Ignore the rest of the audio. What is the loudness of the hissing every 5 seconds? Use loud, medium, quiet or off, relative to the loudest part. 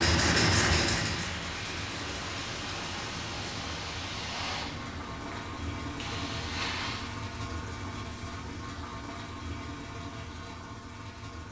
loud, loud, off.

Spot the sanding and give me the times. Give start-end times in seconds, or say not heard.
0.0-3.5.